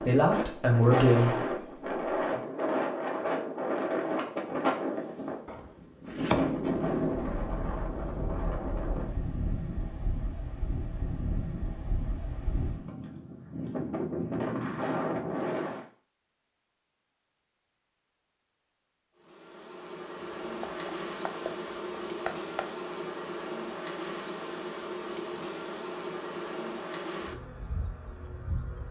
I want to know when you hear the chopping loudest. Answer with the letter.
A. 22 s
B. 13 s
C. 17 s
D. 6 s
D.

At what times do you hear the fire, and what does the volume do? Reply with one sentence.
You can't hear the fire here.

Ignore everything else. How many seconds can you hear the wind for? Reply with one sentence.
You can hear the wind for 16 seconds altogether.